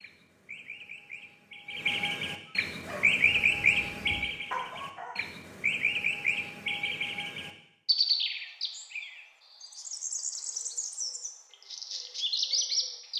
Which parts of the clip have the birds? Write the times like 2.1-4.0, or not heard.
0.0-13.1.